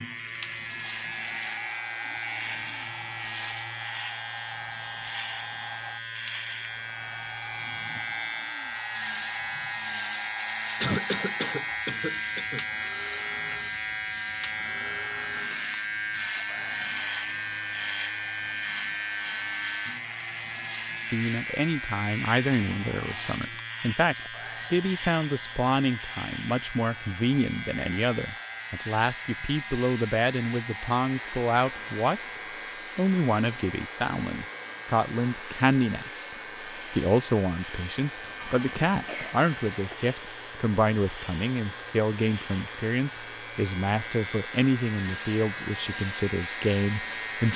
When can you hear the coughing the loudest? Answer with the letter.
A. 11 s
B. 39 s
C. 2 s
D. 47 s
A.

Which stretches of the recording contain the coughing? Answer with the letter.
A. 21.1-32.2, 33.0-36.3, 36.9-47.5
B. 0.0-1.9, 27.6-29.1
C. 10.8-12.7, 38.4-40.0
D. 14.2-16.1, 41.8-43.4
C.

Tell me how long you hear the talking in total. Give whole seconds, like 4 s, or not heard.
25 s.